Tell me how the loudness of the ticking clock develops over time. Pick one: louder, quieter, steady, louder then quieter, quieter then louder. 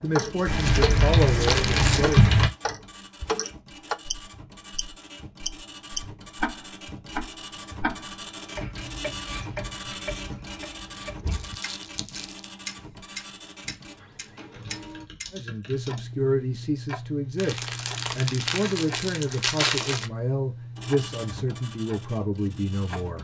quieter.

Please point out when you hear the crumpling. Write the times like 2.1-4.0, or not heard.
0.3-2.2, 11.2-12.4, 17.4-20.1.